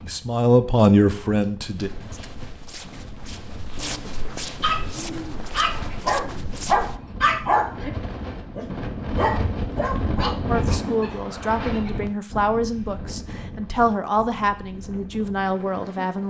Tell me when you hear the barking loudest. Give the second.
7 s.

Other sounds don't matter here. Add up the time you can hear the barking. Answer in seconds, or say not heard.
7 s.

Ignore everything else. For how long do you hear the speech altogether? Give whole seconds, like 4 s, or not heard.
8 s.